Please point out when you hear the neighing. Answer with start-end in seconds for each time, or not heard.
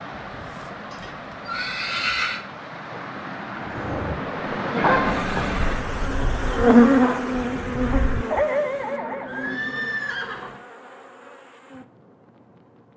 0.2-2.4, 4.8-6.0, 9.2-10.6.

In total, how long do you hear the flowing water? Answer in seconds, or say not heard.
9 s.